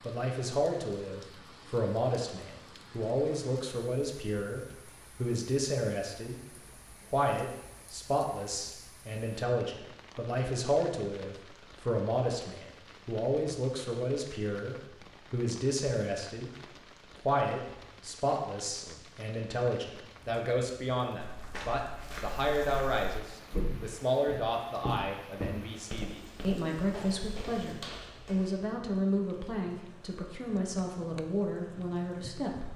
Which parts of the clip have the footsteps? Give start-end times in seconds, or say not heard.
21.1-28.6.